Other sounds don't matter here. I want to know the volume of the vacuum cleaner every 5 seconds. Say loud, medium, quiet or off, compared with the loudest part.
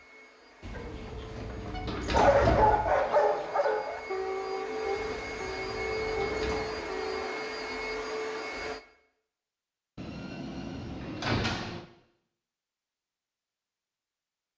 medium, loud, off.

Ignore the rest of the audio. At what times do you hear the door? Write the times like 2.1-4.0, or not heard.
0.6-3.0, 5.0-6.8, 9.9-11.8.